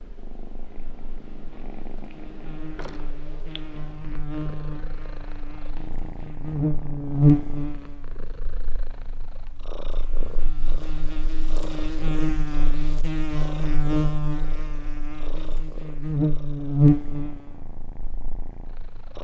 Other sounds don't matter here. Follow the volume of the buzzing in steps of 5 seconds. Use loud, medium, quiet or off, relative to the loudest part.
quiet, loud, medium, loud.